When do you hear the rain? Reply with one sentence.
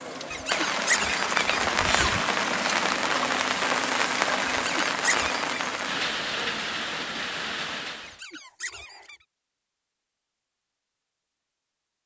You can hear the rain from 0.0 to 8.2 s.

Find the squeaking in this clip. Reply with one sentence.
The squeaking can be heard from 0.3 to 2.2 s, from 4.5 to 5.5 s and from 8.0 to 9.2 s.